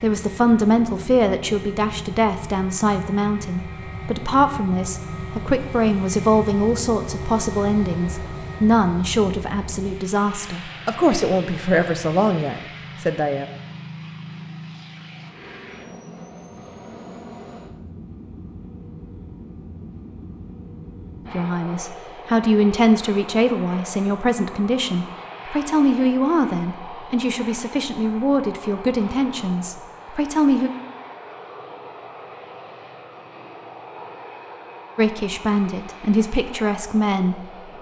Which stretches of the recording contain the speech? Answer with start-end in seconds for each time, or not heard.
0.0-13.4, 21.3-30.7, 35.0-37.5.